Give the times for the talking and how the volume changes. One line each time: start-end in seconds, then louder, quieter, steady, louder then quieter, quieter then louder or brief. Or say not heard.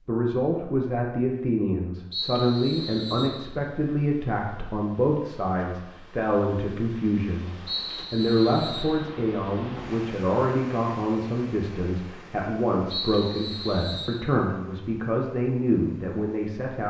0.1-16.8 steady.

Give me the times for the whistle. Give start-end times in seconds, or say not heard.
2.1-3.4, 7.7-8.9, 12.9-14.2.